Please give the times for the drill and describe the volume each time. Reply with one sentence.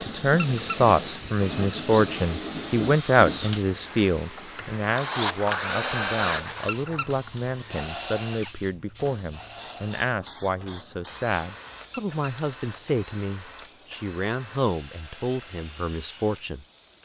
The drill can be heard from 0.0 to 17.0 s, getting quieter.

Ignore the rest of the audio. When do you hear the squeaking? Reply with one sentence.
The squeaking can be heard from 0.3 to 0.8 s, from 6.7 to 7.1 s and from 11.9 to 12.3 s.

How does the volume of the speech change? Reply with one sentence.
The volume of the speech goes down.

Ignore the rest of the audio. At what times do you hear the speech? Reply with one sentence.
The speech can be heard from 0.0 to 17.0 s.